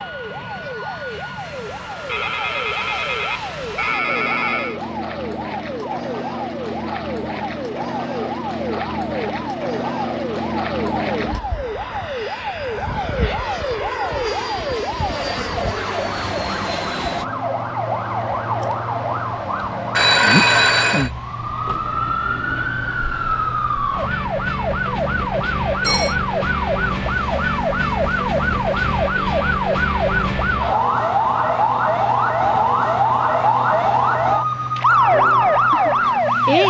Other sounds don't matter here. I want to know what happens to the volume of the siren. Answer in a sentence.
The loudness of the siren goes up.